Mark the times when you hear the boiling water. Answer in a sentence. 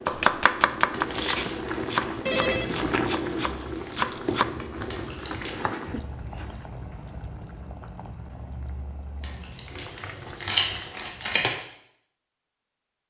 You can hear the boiling water from 0.0 to 11.2 s.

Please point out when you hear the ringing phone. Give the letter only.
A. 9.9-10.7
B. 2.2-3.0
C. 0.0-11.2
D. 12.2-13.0
B.